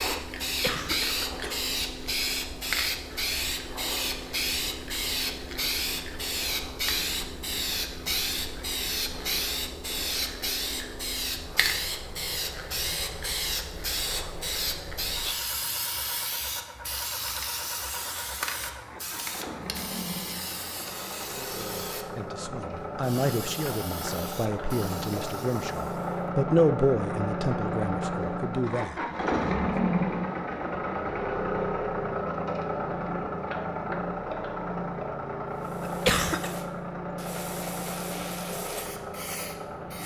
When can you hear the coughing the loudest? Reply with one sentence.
The loudest moment of the coughing is at 36 seconds.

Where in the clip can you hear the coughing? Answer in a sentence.
The coughing can be heard from 0.6 to 1.6 s and from 35.9 to 36.5 s.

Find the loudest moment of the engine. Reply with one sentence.
The volume of the engine peaks at 30 seconds.